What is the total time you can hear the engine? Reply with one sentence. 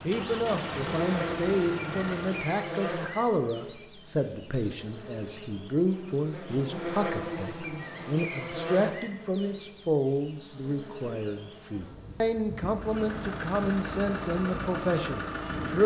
You can hear the engine for 6 seconds altogether.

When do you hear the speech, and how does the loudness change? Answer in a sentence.
You can hear the speech from 0.0 to 15.8 s, at a steady volume.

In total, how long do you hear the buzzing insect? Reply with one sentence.
The buzzing insect can be heard for 16 seconds in total.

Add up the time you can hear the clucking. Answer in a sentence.
The clucking can't be heard in this clip.